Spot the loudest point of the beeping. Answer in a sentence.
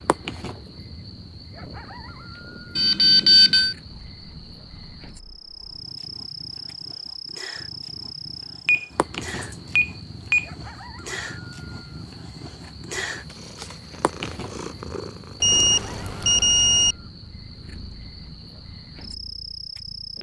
The volume of the beeping peaks at 3 seconds.